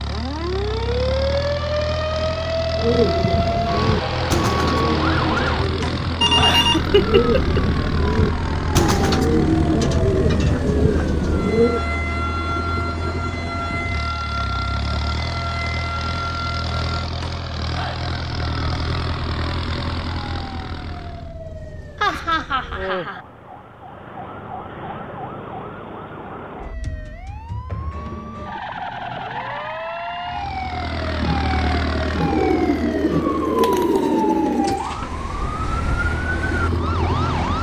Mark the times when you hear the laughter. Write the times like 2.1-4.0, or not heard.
6.5-7.6, 22.0-23.2.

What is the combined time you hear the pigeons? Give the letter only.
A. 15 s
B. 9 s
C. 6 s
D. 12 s
D.